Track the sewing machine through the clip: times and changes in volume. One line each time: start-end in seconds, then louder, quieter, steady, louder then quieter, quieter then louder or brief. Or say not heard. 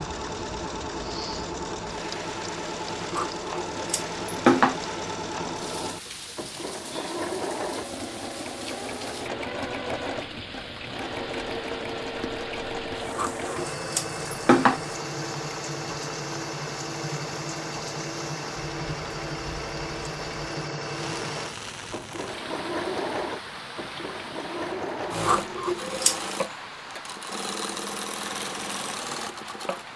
0.0-29.9 steady.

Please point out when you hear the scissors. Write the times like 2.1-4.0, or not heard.
3.1-4.8, 13.2-14.8, 25.2-26.2.